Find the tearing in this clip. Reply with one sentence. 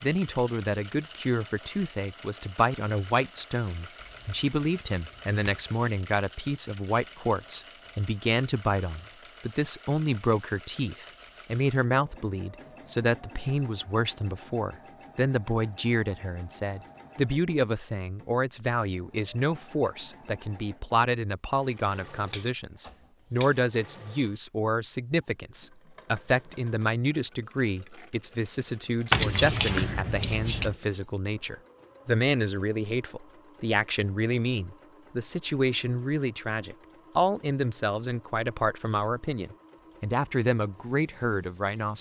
You can't hear the tearing here.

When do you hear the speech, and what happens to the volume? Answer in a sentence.
You can hear the speech from 0.0 to 41.9 s, at a steady volume.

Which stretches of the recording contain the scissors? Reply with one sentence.
The scissors can be heard from 4.0 to 5.4 s, from 22.2 to 24.0 s and from 29.1 to 30.8 s.